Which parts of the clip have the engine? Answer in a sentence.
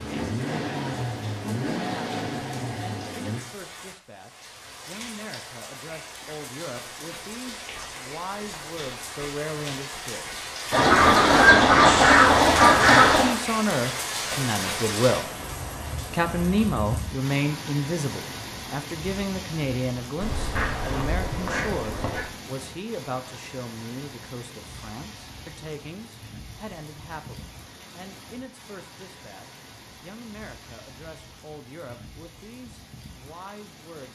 The engine can be heard from 0.0 to 3.4 s.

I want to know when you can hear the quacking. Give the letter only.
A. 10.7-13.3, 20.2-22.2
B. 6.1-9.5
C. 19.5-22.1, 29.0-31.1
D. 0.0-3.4
A.